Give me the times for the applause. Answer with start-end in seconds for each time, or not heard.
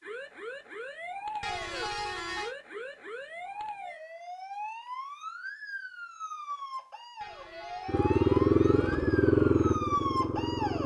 not heard.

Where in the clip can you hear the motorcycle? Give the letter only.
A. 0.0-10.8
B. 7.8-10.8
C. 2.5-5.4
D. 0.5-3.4
B.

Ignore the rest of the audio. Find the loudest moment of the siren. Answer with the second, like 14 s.
10 s.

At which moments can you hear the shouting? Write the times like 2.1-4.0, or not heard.
not heard.